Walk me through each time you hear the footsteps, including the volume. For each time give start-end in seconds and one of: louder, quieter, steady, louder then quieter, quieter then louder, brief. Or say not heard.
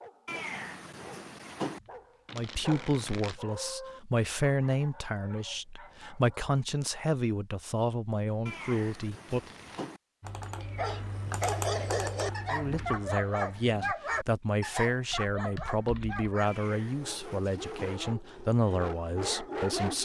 not heard.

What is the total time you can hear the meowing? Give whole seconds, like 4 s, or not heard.
5 s.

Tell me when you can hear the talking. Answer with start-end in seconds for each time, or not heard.
2.3-9.4, 12.5-20.0.